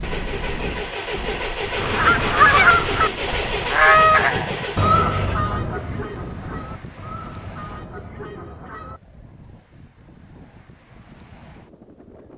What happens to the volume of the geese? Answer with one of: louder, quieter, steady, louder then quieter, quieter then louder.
quieter.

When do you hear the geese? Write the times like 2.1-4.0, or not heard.
1.8-9.0.